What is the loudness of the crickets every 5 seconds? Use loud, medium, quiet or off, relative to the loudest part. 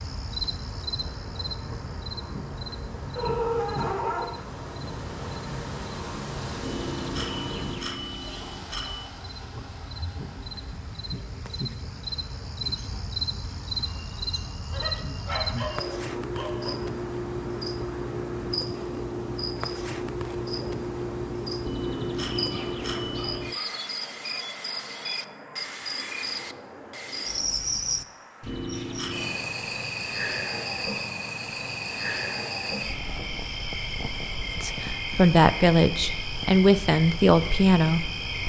medium, quiet, loud, loud, loud, loud, loud, loud.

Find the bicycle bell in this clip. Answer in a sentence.
You can hear the bicycle bell from 6.6 to 9.1 s, from 21.6 to 23.4 s and from 28.4 to 29.4 s.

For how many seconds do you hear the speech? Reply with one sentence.
The speech can be heard for 4 seconds in total.